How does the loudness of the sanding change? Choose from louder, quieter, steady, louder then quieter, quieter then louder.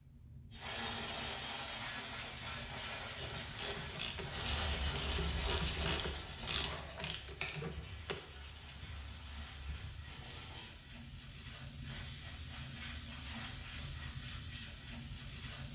quieter.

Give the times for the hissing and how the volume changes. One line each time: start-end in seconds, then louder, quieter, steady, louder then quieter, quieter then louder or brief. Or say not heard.
0.0-15.7 quieter then louder.